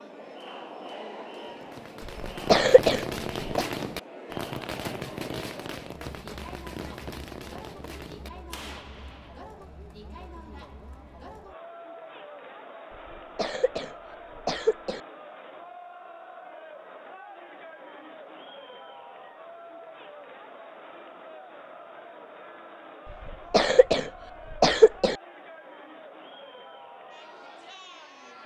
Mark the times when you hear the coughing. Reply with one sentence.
You can hear the coughing from 2.2 to 3.6 s, from 13.1 to 15.0 s and from 23.2 to 25.1 s.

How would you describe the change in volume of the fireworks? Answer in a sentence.
The volume of the fireworks goes down.